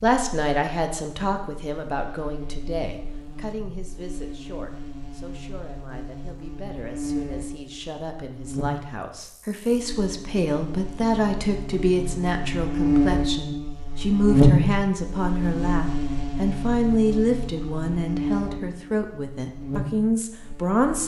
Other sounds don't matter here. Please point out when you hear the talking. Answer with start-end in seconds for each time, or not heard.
0.0-21.0.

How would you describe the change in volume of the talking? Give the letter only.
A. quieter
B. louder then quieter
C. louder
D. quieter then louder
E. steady
D.